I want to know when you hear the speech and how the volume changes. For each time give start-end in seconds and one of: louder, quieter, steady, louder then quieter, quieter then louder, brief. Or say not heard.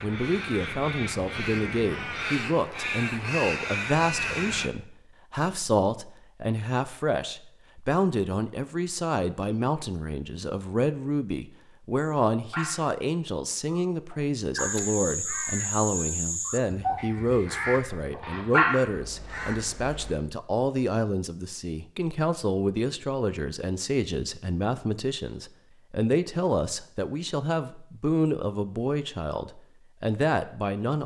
0.0-31.0 steady.